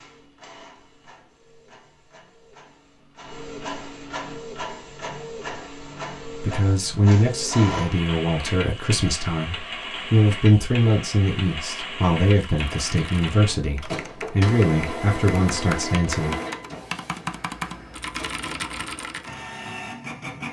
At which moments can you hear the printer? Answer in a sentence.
You can hear the printer from 0.0 to 20.4 s.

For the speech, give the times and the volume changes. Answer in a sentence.
The speech can be heard from 6.2 to 16.4 s, at a steady volume.